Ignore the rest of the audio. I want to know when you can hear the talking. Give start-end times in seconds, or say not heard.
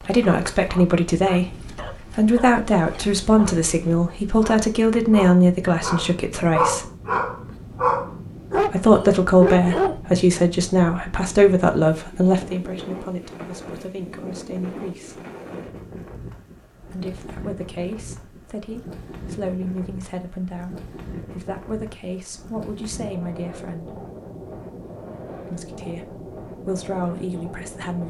0.0-6.8, 8.7-15.2, 16.9-24.0, 25.4-28.0.